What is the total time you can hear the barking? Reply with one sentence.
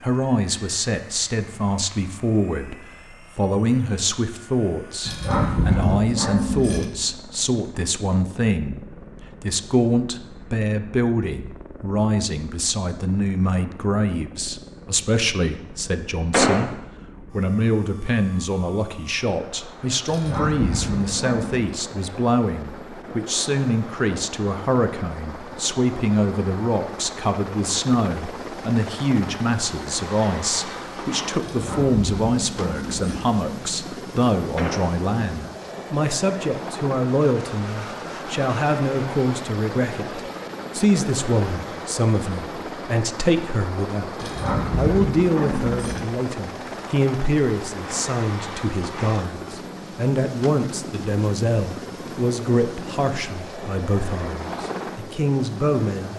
The barking can be heard for 7 seconds in total.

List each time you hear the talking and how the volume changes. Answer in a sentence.
You can hear the talking from 0.0 to 56.1 s, at a steady volume.